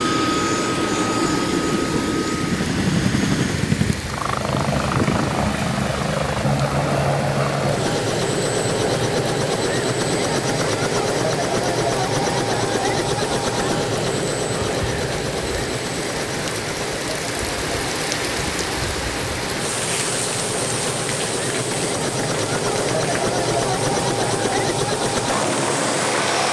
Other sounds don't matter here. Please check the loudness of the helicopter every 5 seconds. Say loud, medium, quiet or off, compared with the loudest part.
loud, loud, loud, medium, loud, loud.